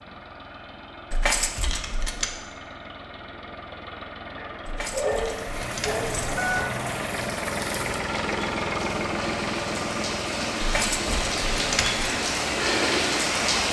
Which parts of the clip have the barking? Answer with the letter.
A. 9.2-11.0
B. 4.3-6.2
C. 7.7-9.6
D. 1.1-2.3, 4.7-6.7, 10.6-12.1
B.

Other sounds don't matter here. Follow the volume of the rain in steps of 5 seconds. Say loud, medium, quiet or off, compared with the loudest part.
off, medium, loud.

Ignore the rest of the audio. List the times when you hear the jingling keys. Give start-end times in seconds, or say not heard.
1.1-2.3, 4.7-6.7, 10.6-12.1.